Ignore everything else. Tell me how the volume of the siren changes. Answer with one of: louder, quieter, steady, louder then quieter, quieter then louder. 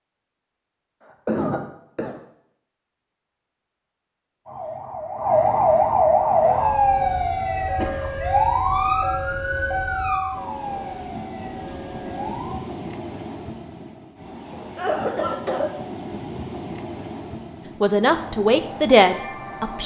quieter.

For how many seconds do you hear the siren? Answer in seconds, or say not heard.
8 s.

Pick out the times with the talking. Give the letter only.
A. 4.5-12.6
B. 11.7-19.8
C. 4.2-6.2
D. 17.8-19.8
D.